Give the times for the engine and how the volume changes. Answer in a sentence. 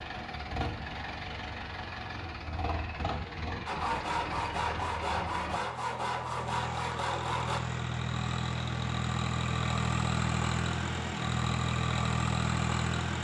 The engine can be heard from 0.0 to 13.1 s, getting louder.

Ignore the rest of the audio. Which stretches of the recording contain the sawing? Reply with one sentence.
You can hear the sawing from 3.6 to 7.6 s.